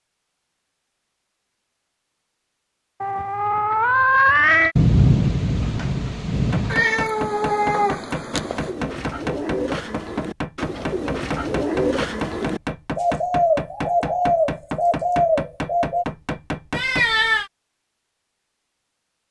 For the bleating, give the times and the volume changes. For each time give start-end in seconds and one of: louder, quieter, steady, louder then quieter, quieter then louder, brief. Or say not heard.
not heard.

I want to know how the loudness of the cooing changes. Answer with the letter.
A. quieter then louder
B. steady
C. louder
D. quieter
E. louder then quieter
C.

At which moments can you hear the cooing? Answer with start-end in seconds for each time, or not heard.
8.3-16.1.